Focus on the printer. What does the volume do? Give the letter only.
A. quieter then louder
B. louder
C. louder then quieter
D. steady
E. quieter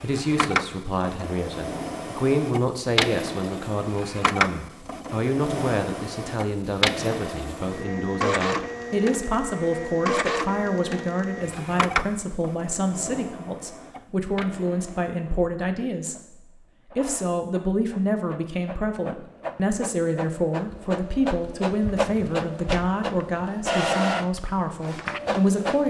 A.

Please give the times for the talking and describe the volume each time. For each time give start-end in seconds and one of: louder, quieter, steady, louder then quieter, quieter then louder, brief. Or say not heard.
0.0-25.8 steady.